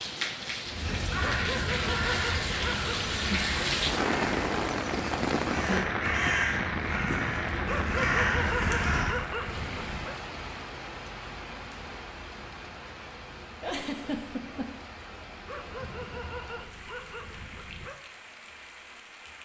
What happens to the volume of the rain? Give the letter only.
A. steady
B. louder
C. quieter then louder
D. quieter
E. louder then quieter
D.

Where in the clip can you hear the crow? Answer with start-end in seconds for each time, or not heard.
0.7-9.2.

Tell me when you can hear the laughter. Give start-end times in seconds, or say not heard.
13.6-14.8.